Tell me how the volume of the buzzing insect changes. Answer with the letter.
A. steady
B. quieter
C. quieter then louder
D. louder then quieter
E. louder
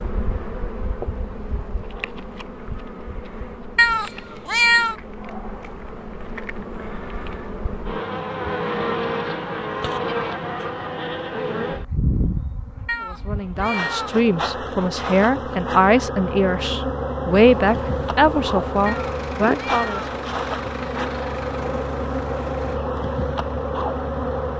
E.